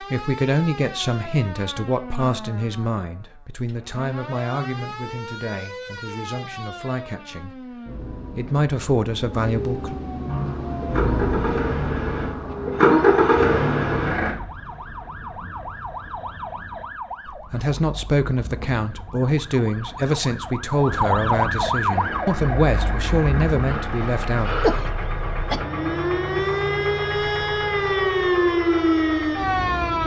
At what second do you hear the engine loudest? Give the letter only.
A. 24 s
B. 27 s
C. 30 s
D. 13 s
D.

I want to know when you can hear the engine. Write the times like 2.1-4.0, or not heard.
10.2-14.3, 21.8-30.0.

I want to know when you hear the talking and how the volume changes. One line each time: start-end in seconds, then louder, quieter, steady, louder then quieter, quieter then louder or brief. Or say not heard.
0.0-9.9 quieter then louder
17.3-24.5 steady.